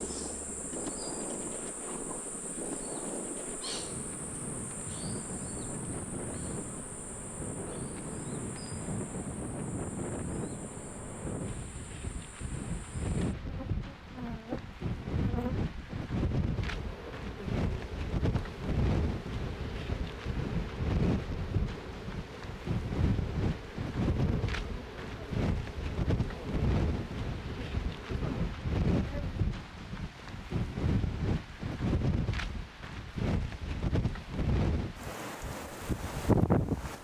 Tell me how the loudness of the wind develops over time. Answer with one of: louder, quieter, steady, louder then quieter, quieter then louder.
louder.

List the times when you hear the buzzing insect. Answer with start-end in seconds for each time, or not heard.
0.0-29.4.